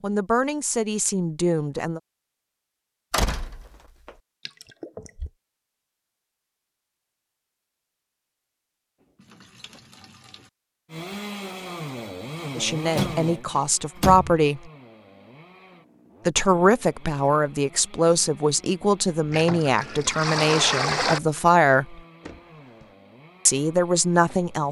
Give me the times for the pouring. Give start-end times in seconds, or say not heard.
4.5-5.3, 9.0-10.5, 19.3-21.2.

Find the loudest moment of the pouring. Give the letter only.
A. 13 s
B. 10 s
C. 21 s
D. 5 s
C.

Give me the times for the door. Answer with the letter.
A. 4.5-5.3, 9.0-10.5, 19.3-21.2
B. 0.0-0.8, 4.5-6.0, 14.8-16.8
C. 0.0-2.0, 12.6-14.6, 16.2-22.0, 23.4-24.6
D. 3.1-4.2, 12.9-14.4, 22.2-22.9
D.